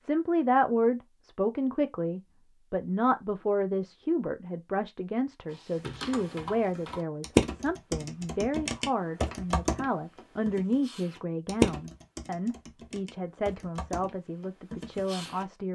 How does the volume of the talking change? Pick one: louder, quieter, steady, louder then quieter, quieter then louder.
quieter.